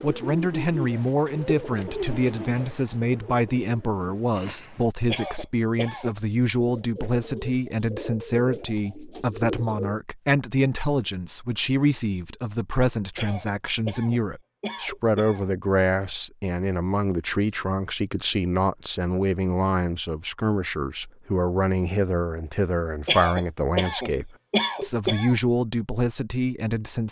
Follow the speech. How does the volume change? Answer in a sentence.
The loudness of the speech stays about the same.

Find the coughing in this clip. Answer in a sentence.
You can hear the coughing from 5.0 to 6.2 s, from 13.2 to 15.4 s and from 23.1 to 25.4 s.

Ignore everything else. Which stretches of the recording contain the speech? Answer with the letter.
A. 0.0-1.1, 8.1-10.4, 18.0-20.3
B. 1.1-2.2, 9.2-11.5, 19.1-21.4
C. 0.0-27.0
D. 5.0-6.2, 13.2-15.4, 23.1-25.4
C.